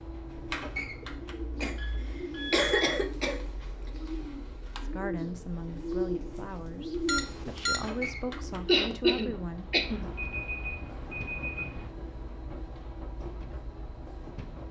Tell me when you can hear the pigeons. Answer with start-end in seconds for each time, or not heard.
0.3-8.8.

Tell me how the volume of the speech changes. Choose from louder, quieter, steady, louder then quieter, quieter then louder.
quieter then louder.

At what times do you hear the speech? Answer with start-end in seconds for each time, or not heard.
4.8-9.7.